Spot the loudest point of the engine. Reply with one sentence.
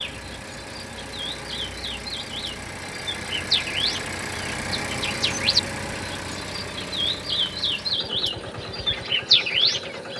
The loudest moment of the engine is at 5 seconds.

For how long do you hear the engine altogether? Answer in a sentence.
You can hear the engine for 10 seconds altogether.